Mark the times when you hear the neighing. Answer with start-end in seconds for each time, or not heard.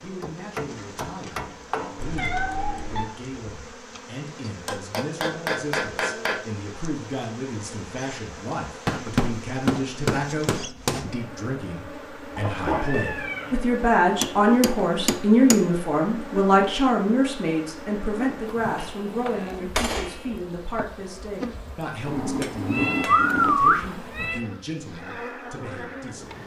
not heard.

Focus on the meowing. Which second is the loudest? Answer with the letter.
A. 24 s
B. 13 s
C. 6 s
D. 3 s
A.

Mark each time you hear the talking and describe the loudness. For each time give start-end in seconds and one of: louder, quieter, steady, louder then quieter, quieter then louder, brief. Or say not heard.
0.0-26.4 louder then quieter.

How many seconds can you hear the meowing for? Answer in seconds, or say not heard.
4 s.